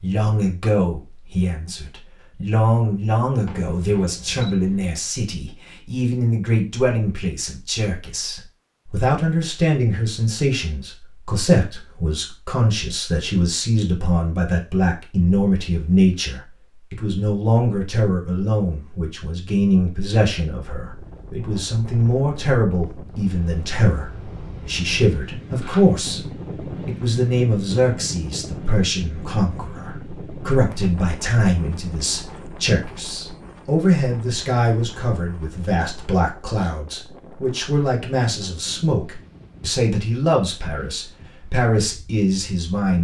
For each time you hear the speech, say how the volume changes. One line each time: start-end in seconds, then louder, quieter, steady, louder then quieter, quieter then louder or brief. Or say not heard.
0.0-26.2 steady
26.9-42.9 steady.